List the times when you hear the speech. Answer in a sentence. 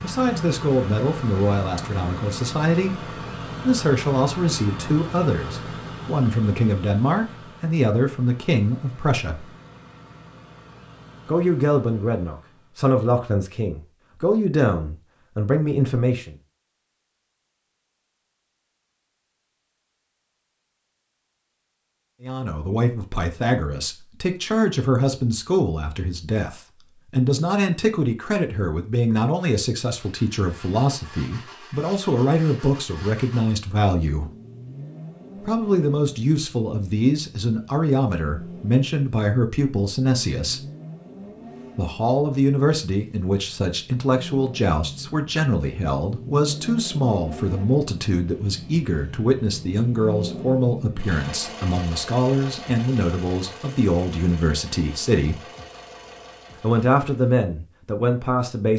You can hear the speech from 0.0 to 9.6 s, from 11.2 to 16.4 s, from 22.2 to 34.3 s, from 35.4 to 40.6 s, from 41.8 to 55.5 s and from 56.6 to 58.7 s.